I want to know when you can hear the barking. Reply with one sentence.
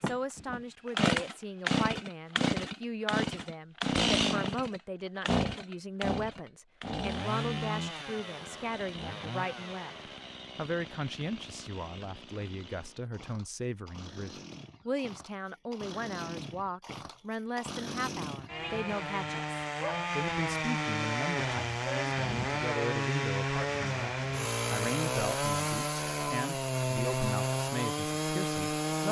The barking can't be heard in this clip.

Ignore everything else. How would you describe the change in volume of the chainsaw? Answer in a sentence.
The volume of the chainsaw goes down, then up.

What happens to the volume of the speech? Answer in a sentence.
The loudness of the speech stays about the same.